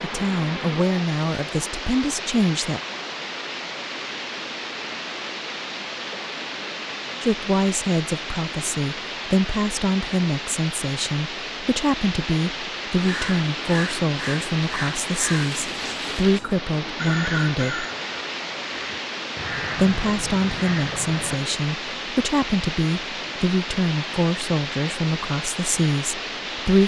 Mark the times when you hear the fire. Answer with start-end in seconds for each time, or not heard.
not heard.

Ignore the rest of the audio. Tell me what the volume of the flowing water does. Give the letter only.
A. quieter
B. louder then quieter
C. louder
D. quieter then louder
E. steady
E.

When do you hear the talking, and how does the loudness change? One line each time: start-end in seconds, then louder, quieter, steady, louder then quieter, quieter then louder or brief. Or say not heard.
0.0-2.8 brief
7.2-17.9 steady
19.8-26.8 steady.